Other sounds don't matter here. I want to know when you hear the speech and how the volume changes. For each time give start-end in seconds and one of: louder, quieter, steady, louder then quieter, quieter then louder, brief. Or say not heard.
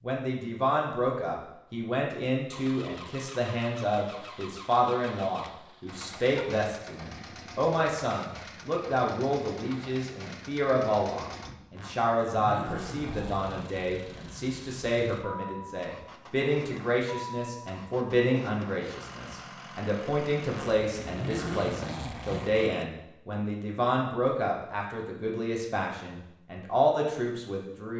0.0-27.9 steady.